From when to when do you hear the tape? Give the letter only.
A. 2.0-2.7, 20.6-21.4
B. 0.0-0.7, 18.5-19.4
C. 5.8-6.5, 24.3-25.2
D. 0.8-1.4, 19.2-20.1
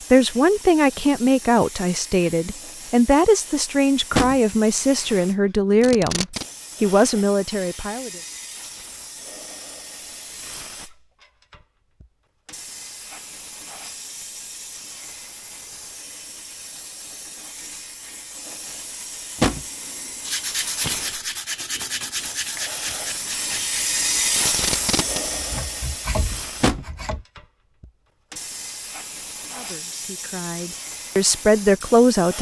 C.